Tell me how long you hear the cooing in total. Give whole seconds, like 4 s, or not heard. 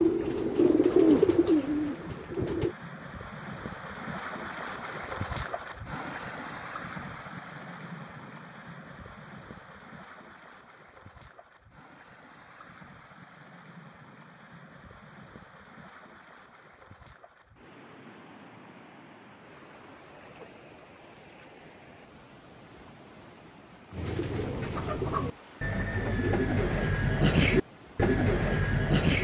8 s.